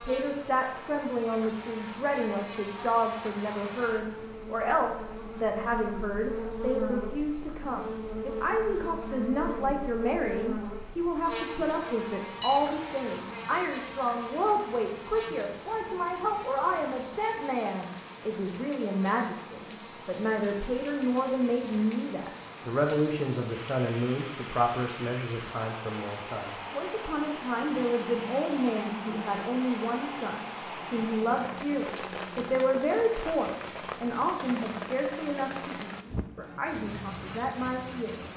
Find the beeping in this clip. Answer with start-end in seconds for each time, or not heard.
12.4-13.0.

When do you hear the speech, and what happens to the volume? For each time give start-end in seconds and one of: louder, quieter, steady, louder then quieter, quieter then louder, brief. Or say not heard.
0.0-38.3 steady.